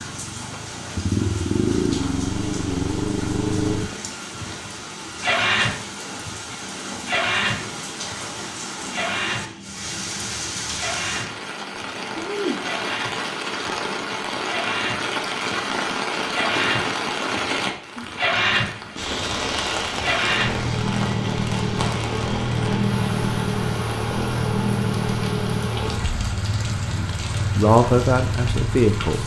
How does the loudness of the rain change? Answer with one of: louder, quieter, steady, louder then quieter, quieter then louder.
louder then quieter.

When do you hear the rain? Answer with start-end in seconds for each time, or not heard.
0.0-29.2.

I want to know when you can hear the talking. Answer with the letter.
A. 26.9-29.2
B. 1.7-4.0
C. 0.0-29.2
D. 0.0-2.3
A.